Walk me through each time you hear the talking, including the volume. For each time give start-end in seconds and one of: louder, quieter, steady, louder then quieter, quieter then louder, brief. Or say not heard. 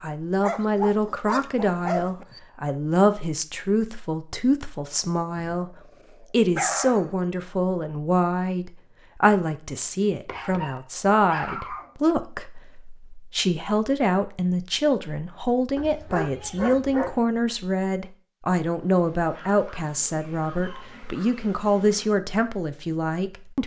0.0-23.6 steady.